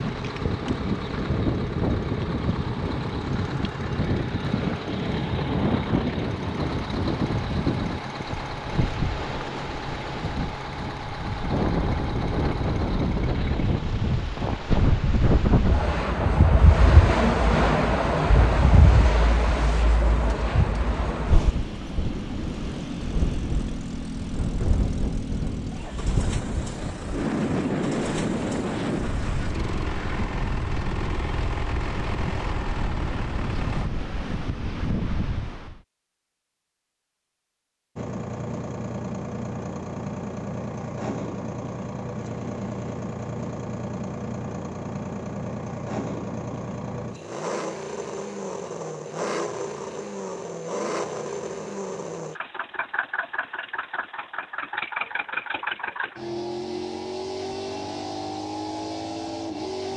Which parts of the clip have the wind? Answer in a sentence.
The wind can be heard from 0.0 to 35.8 s.